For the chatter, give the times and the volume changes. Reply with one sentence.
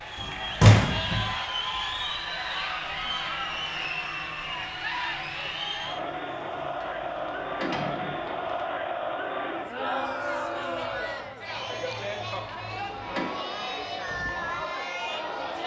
You can hear the chatter from 0.0 to 15.6 s, at a steady volume.